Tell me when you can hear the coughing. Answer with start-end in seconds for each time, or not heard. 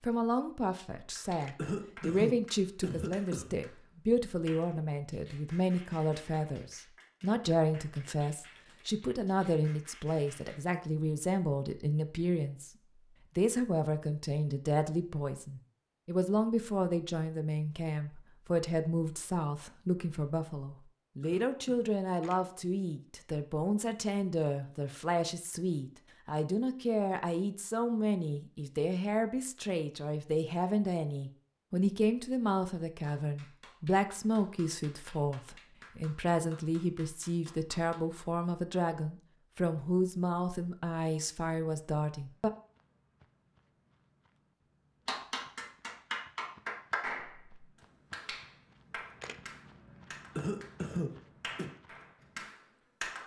1.6-3.5, 21.2-21.9, 50.4-51.7.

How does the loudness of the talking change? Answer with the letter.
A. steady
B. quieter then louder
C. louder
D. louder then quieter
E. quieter
A.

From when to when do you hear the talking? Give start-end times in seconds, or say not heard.
0.0-42.5.